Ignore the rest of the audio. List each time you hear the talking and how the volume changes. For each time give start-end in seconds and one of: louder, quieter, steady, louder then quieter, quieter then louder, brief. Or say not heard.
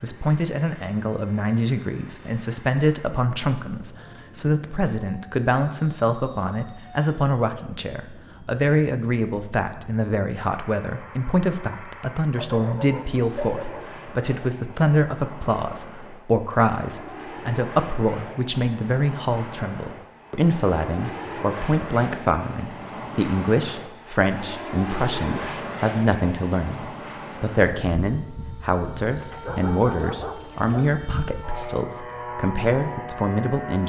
0.0-33.8 steady.